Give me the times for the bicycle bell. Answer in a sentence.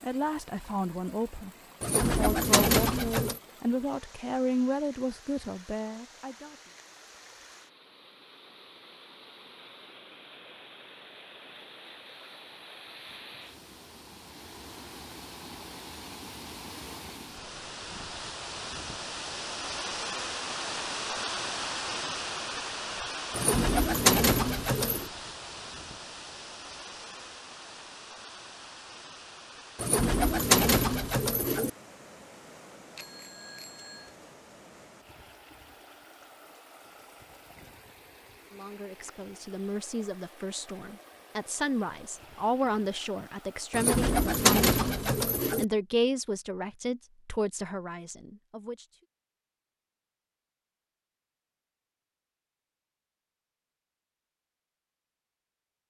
The bicycle bell can be heard from 33.0 to 34.1 s.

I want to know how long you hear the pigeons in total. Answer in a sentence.
The pigeons can be heard for 7 seconds in total.